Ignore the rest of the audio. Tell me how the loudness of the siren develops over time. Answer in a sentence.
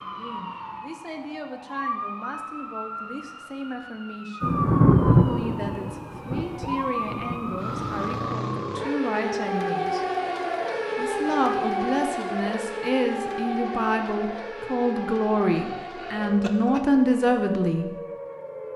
The loudness of the siren goes up, then down.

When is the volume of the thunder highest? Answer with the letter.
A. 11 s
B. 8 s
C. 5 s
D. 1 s
C.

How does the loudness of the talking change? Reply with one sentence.
The loudness of the talking goes up.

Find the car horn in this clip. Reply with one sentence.
You can't hear the car horn here.